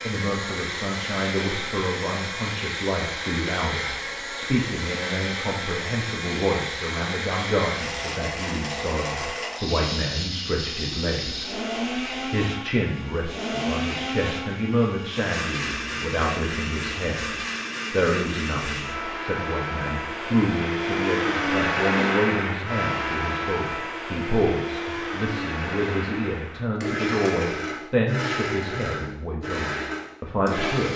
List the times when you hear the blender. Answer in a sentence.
The blender can be heard from 0.0 to 30.9 s.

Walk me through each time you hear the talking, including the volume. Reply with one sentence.
The talking can be heard from 0.1 to 30.9 s, at a steady volume.